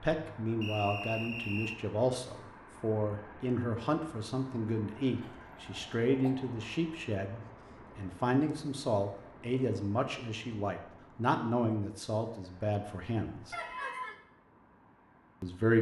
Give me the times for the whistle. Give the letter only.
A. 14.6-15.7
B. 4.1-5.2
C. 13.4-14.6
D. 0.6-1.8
D.